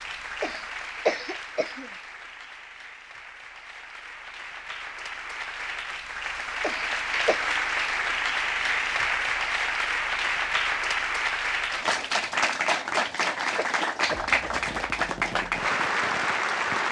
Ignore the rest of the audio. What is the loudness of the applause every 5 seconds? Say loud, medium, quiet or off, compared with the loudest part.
quiet, loud, loud, loud.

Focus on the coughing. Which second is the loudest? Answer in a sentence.
The volume of the coughing peaks at 1 second.